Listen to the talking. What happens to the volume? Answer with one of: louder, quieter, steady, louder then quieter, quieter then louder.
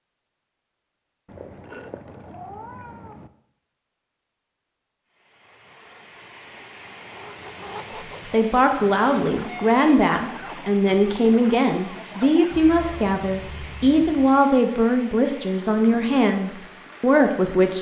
steady.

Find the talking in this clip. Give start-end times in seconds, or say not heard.
8.3-17.7.